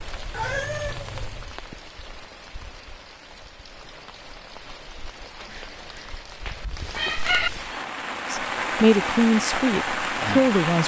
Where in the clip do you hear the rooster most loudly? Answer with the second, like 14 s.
7 s.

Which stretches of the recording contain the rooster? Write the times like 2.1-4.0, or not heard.
5.5-7.5.